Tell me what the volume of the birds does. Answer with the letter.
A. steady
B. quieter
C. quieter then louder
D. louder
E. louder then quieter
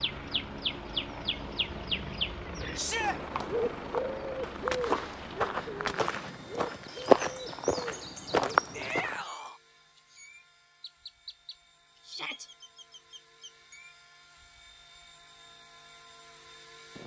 B.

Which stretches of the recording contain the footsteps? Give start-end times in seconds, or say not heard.
3.3-9.2.